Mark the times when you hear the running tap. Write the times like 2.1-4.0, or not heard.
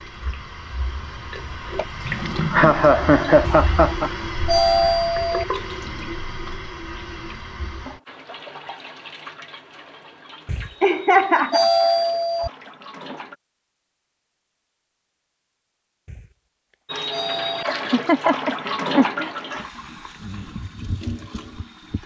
0.0-13.3, 16.9-22.0.